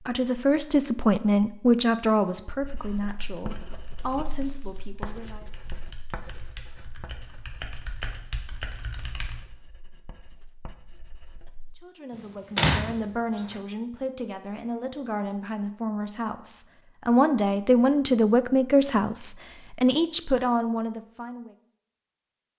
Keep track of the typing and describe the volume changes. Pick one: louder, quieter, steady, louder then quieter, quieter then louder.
louder.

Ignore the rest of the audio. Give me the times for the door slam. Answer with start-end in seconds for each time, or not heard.
12.6-13.6.